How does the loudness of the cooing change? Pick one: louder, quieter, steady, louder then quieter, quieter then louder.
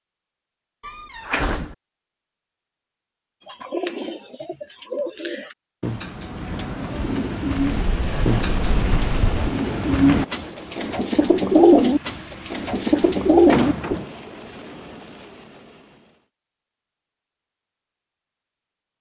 louder.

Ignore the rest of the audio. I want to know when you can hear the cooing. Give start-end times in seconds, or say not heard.
3.5-14.0.